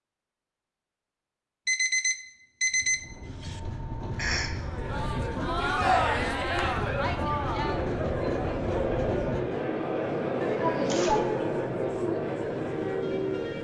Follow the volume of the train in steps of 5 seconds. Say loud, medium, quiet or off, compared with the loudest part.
medium, loud, loud.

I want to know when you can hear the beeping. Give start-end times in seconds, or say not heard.
1.6-3.6.